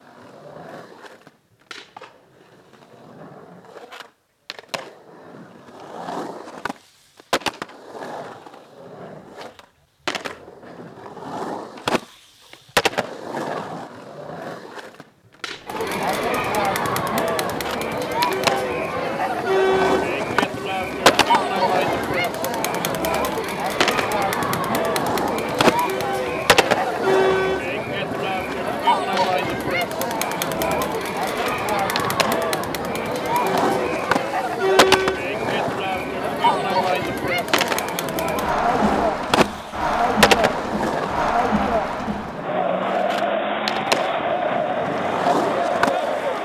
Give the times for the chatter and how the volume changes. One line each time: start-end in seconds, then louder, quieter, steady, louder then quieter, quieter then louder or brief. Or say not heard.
15.7-46.4 steady.